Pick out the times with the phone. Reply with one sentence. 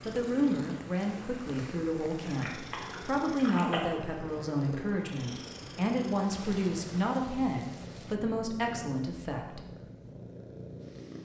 You can hear the phone from 2.2 to 3.8 s.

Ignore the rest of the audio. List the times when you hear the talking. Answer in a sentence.
The talking can be heard from 0.1 to 9.6 s.